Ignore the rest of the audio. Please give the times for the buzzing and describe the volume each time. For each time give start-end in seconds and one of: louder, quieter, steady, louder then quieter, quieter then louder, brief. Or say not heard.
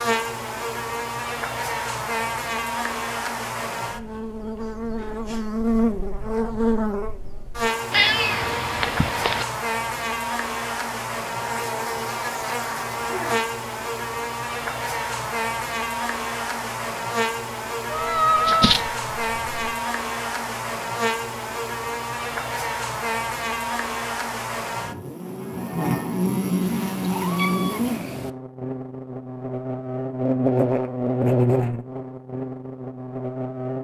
0.0-33.8 steady.